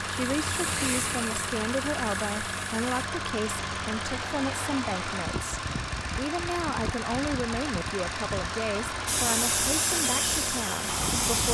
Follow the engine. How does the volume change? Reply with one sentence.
The loudness of the engine stays about the same.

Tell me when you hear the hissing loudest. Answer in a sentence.
The volume of the hissing peaks at 10 seconds.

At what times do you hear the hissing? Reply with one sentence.
You can hear the hissing from 0.1 to 3.0 s and from 9.1 to 11.5 s.